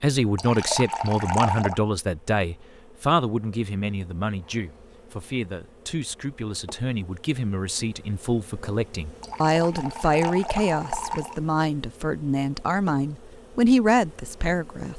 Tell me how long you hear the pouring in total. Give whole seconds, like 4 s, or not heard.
4 s.